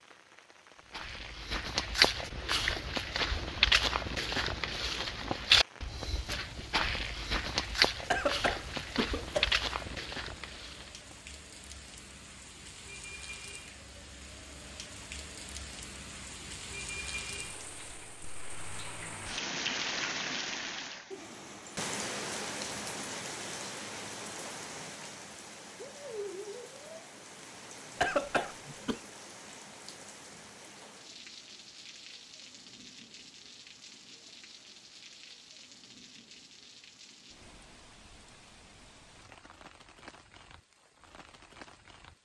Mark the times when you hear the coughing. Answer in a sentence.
The coughing can be heard from 8.1 to 9.5 s and from 28.0 to 29.0 s.